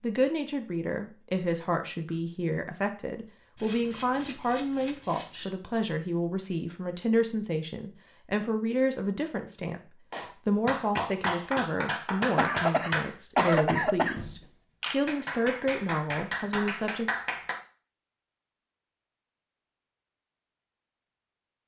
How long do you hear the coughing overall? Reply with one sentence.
You can hear the coughing for 2 seconds altogether.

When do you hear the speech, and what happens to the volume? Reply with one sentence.
The speech can be heard from 0.0 to 17.1 s, at a steady volume.